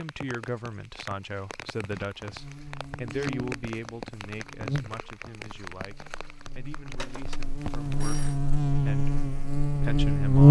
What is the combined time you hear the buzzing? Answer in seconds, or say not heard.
8 s.